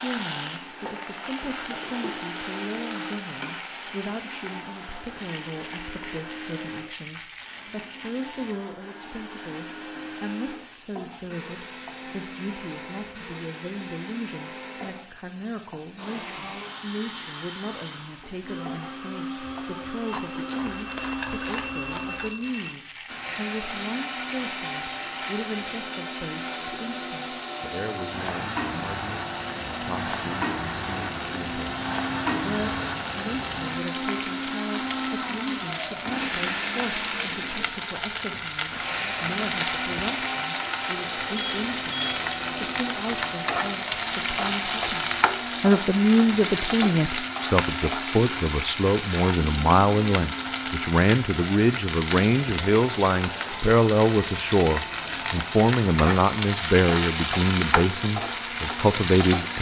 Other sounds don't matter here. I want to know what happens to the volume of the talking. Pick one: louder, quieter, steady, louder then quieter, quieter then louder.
louder.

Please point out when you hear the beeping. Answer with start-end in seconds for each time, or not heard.
20.1-22.8, 41.4-42.1.